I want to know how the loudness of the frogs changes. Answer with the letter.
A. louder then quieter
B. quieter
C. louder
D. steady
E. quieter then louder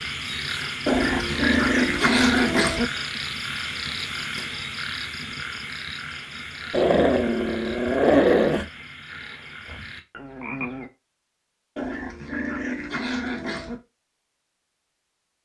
B.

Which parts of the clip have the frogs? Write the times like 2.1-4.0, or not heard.
0.0-10.9.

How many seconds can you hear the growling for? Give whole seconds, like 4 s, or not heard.
6 s.